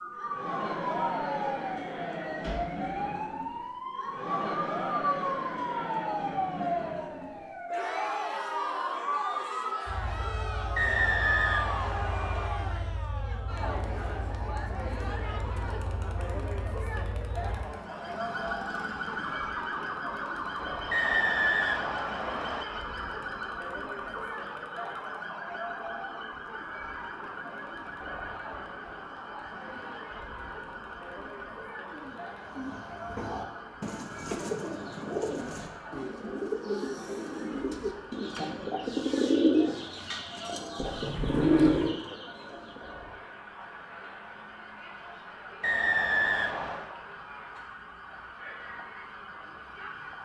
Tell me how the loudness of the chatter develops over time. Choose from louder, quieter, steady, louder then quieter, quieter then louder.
quieter.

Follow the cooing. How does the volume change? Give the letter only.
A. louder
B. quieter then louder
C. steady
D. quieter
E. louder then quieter
A.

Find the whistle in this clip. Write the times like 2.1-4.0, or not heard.
10.8-12.5, 20.9-22.6, 45.6-46.9.